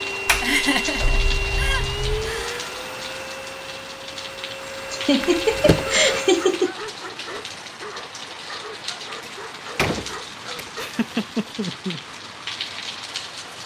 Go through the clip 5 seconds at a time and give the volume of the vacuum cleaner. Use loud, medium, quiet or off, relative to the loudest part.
loud, loud, off.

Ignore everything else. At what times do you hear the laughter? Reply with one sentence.
You can hear the laughter from 0.4 to 2.6 s, from 4.9 to 6.8 s and from 10.8 to 12.0 s.